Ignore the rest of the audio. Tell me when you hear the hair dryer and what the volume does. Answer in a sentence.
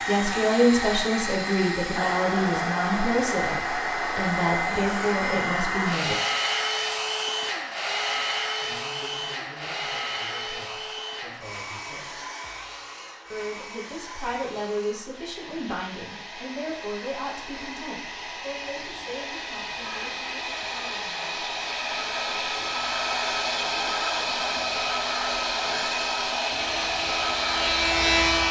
The hair dryer can be heard from 0.0 to 28.4 s, getting quieter then louder.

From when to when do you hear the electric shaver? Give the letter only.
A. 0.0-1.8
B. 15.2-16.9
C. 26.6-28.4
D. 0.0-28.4
C.